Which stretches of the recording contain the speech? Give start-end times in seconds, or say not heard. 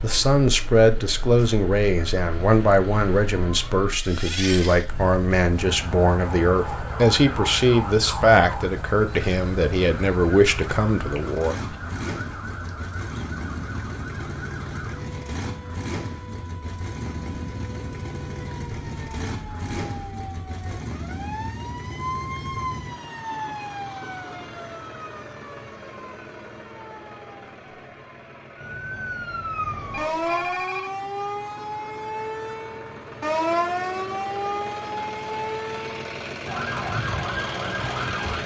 0.0-11.8.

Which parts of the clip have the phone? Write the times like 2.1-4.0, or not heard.
29.9-30.9.